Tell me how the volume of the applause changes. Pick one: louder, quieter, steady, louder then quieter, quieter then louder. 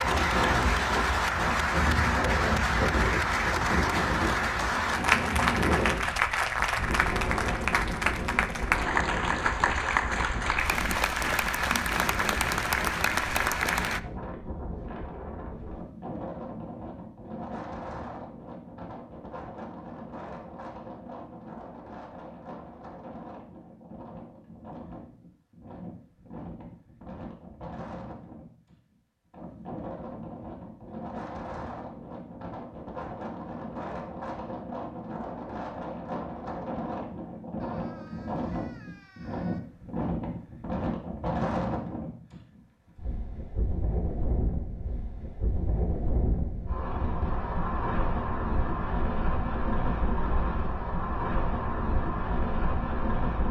steady.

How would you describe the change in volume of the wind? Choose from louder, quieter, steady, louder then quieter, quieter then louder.
quieter then louder.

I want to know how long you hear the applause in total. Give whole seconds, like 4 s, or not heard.
14 s.